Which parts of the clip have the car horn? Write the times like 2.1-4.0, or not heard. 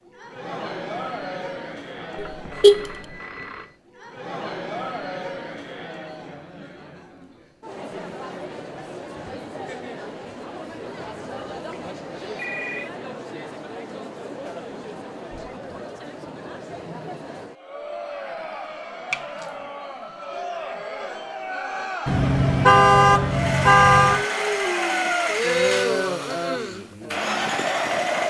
2.1-2.9, 22.1-24.2.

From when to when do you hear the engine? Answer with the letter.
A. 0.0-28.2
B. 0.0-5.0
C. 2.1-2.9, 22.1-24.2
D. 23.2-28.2
D.